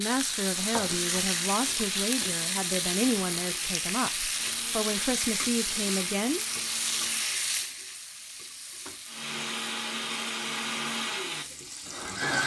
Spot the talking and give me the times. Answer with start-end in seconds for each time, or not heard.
0.0-6.5.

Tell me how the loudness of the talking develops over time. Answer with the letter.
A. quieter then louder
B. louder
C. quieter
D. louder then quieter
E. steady
E.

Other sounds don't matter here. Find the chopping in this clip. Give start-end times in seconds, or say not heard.
not heard.